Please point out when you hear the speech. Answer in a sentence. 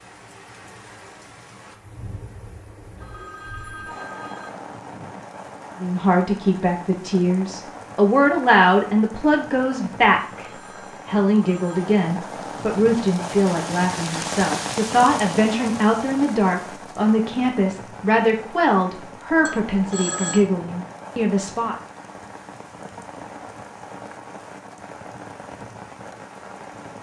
You can hear the speech from 5.8 to 21.8 s.